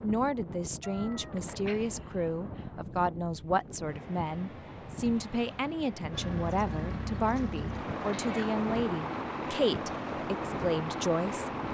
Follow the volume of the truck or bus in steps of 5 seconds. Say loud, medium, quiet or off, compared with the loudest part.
off, loud, loud.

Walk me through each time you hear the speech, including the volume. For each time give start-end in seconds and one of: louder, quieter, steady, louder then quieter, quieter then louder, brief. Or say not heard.
0.0-11.5 steady.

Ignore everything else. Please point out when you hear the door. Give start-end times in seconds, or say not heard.
not heard.